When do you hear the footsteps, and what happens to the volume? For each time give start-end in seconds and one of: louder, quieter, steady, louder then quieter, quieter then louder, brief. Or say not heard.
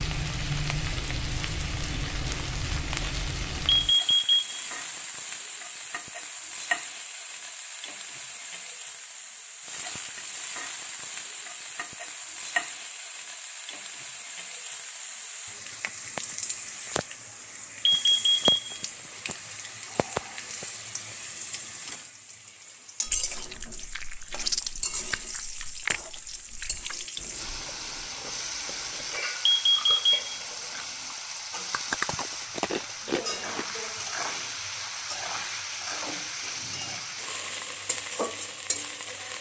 not heard.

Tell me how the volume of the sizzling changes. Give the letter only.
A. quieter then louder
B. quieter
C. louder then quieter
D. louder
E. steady
E.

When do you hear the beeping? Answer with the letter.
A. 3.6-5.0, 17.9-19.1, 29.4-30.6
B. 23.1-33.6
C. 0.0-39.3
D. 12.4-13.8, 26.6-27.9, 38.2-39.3
A.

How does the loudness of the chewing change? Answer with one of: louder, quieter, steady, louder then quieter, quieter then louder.
quieter then louder.